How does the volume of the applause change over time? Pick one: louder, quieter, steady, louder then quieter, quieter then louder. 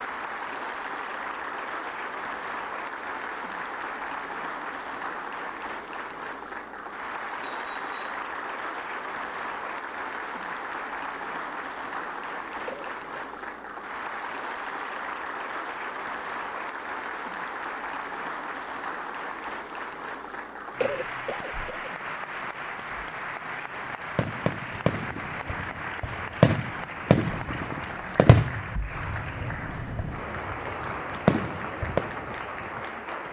steady.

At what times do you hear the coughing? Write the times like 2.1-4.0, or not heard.
12.7-13.3, 20.8-21.9.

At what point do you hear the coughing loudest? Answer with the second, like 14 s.
21 s.